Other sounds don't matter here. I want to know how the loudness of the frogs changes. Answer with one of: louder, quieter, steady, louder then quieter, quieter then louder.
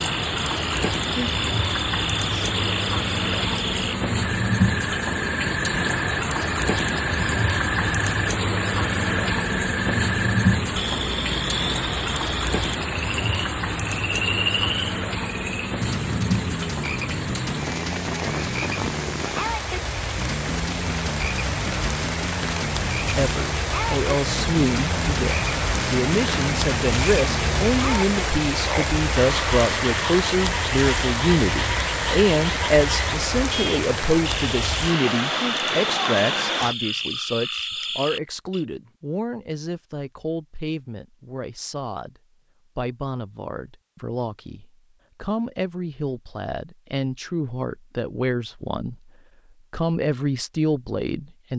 steady.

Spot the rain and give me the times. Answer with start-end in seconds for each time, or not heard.
0.0-36.8.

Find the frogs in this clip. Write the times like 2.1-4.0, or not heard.
0.0-38.6.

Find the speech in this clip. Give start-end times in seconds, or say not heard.
23.1-49.1, 49.7-51.5.